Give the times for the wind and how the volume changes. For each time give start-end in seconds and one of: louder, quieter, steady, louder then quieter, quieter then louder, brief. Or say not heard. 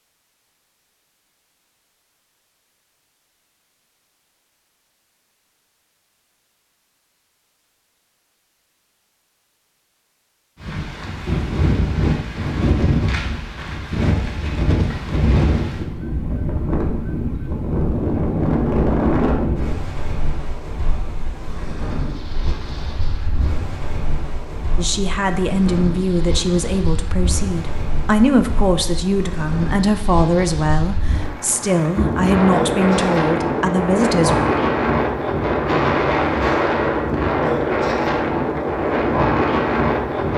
10.6-40.3 quieter then louder.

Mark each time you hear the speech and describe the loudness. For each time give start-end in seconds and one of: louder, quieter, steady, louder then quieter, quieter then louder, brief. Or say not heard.
24.8-34.4 steady.